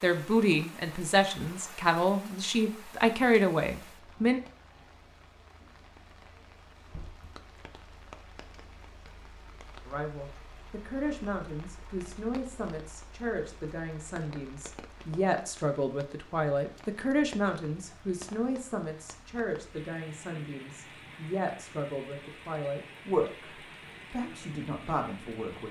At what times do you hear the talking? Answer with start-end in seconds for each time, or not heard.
0.0-4.4, 9.8-25.6.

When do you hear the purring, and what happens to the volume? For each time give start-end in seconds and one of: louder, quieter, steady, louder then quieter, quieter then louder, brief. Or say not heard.
not heard.